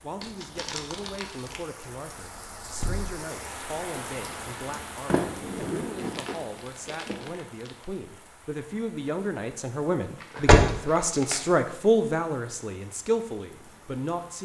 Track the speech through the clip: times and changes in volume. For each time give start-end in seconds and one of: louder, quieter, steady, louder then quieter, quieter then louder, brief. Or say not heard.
0.0-14.3 louder.